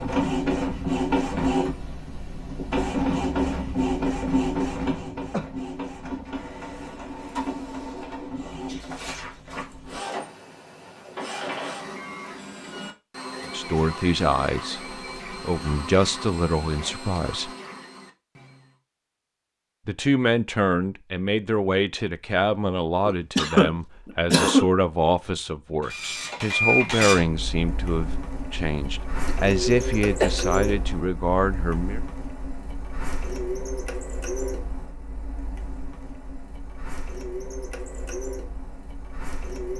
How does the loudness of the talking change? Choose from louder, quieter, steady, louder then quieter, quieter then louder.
steady.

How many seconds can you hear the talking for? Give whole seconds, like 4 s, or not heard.
16 s.